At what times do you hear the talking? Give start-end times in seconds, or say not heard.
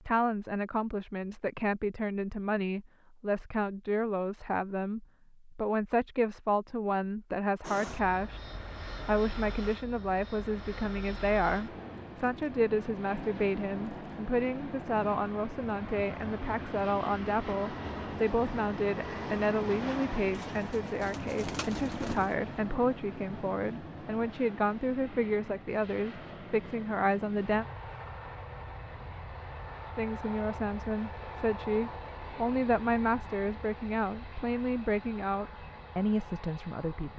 0.1-27.6, 29.9-37.1.